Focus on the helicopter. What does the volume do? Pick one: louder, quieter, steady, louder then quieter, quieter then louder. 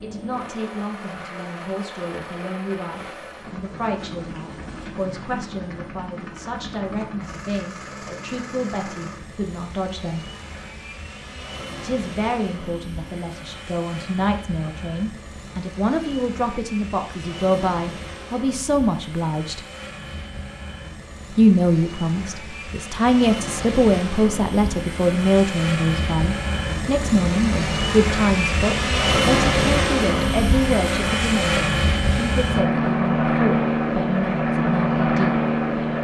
louder.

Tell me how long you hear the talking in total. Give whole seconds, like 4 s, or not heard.
32 s.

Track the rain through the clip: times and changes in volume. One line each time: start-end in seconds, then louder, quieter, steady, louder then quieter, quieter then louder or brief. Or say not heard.
not heard.